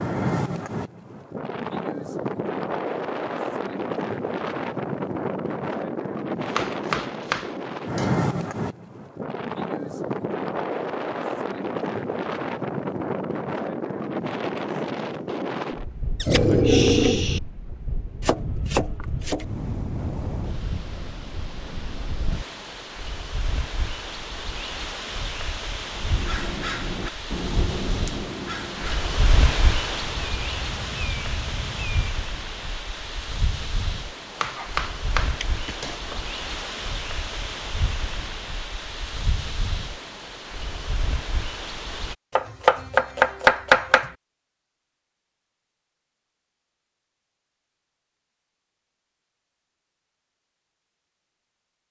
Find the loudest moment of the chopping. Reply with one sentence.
The volume of the chopping peaks at 44 seconds.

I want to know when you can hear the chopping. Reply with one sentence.
The chopping can be heard from 6.5 to 8.3 s, from 18.2 to 19.4 s, from 34.4 to 36.1 s and from 42.4 to 44.1 s.